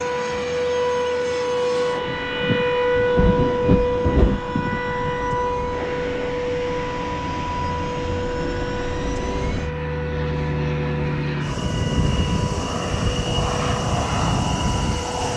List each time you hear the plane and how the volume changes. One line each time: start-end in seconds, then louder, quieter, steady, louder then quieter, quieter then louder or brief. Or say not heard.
0.0-15.3 louder.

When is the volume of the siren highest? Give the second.
3 s.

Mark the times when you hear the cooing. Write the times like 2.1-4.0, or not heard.
not heard.